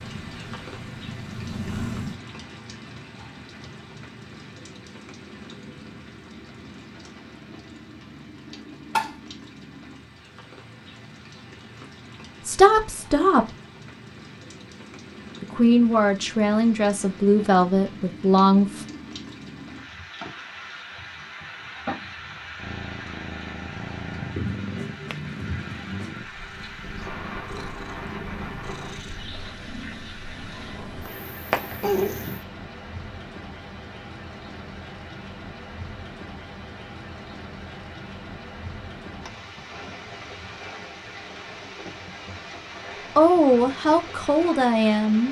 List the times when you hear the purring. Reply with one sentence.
The purring can be heard from 0.0 to 2.2 s and from 22.6 to 32.5 s.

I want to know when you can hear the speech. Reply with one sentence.
You can hear the speech from 12.4 to 13.6 s, from 15.4 to 18.9 s and from 43.1 to 45.2 s.